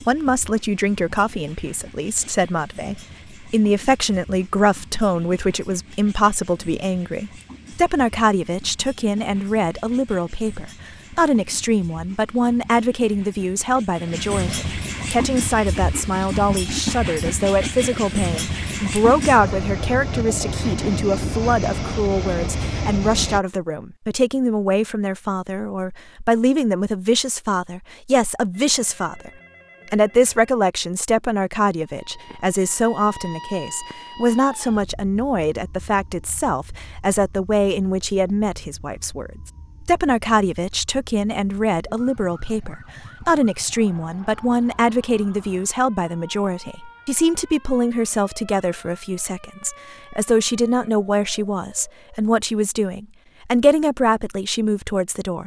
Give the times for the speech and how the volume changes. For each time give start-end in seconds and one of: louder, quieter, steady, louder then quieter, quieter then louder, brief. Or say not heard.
0.0-29.3 steady
29.9-55.4 steady.